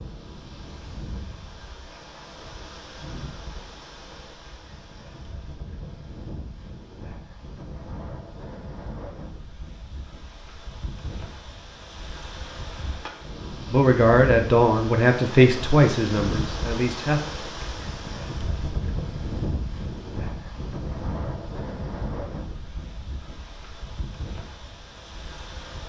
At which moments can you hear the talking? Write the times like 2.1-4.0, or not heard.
13.7-17.2.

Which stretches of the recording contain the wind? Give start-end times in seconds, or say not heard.
0.0-25.8.